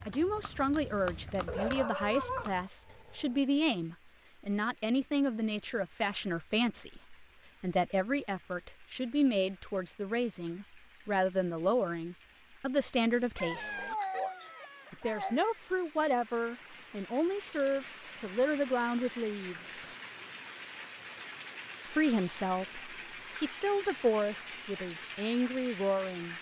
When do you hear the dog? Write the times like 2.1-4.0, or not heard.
1.4-3.4, 13.3-15.6.